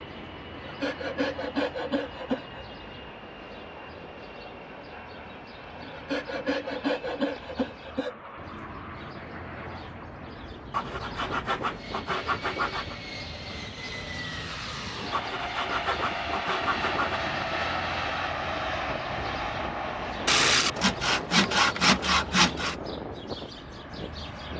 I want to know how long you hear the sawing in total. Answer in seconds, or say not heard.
11 s.